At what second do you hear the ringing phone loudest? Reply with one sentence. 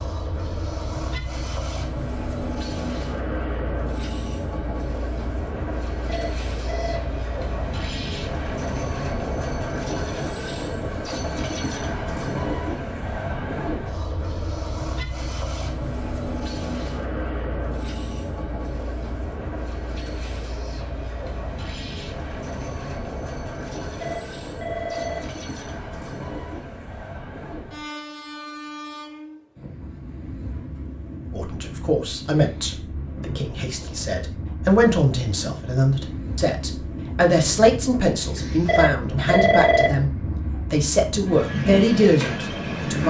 The loudest moment of the ringing phone is at 40 seconds.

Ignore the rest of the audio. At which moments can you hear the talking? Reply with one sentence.
You can hear the talking from 31.3 to 43.0 s.